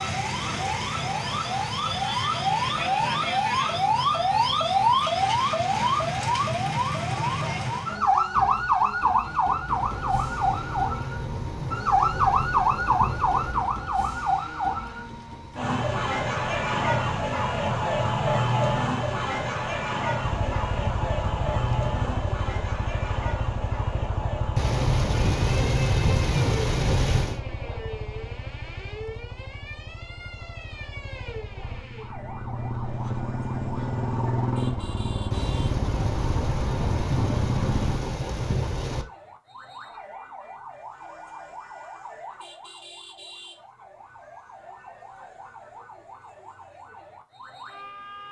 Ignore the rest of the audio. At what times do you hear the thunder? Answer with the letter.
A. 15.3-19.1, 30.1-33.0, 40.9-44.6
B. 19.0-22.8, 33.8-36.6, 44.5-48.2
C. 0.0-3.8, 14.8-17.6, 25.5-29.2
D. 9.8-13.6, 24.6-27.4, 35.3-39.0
D.